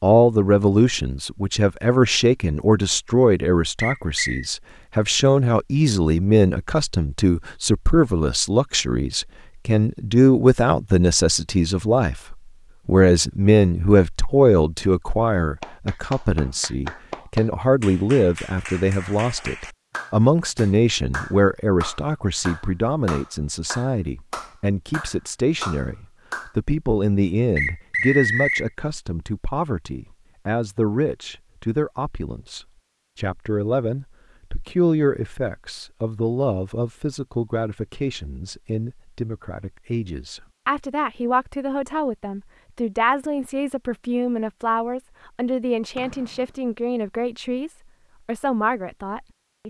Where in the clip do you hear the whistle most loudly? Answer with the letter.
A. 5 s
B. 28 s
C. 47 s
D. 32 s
B.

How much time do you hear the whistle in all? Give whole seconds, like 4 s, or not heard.
2 s.